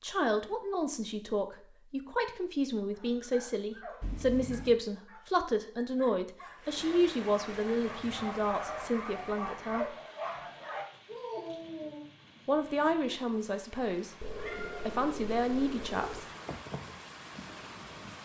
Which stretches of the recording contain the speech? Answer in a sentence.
The speech can be heard from 0.0 to 9.9 s, from 12.4 to 14.2 s and from 14.8 to 16.2 s.